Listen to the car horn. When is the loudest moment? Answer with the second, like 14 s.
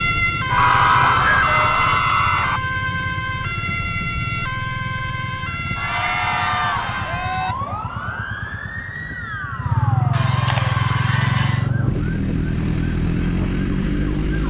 1 s.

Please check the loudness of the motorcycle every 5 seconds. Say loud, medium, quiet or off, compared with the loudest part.
medium, medium, loud.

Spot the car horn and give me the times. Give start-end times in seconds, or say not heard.
0.5-2.0.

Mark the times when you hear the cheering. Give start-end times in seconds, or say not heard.
0.6-2.6, 5.8-7.5, 10.1-11.7.